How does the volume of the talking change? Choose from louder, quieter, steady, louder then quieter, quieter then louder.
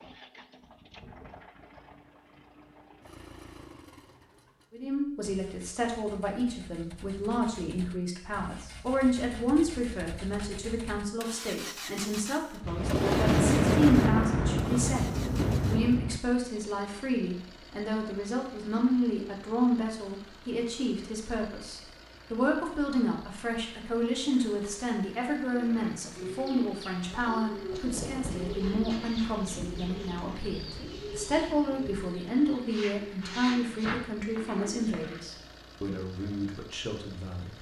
steady.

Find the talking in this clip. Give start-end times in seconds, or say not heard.
4.7-37.5.